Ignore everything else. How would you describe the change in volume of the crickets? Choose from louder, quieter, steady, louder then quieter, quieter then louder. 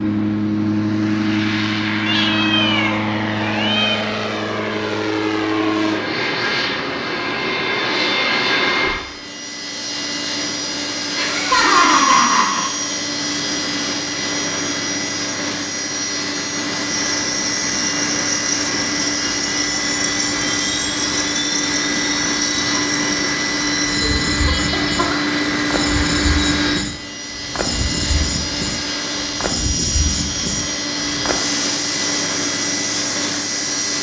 steady.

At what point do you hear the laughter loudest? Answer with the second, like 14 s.
12 s.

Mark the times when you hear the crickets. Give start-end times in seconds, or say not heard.
17.1-33.9.